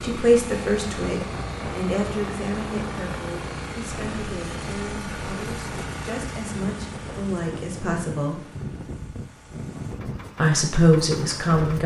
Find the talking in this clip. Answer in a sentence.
You can hear the talking from 0.0 to 8.4 s and from 10.3 to 11.8 s.